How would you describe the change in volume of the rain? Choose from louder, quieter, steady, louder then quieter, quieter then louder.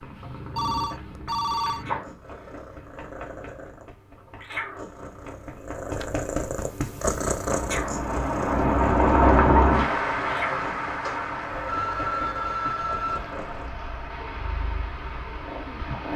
quieter.